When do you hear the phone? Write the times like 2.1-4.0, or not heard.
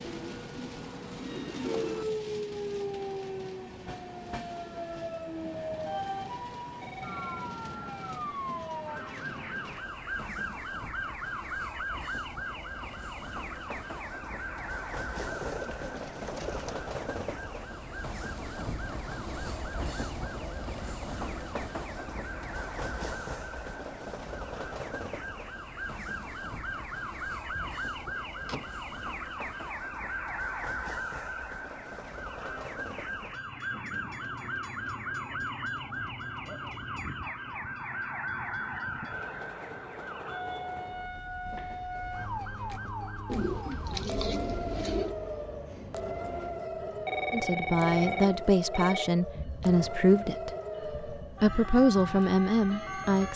6.7-7.5, 47.0-49.1.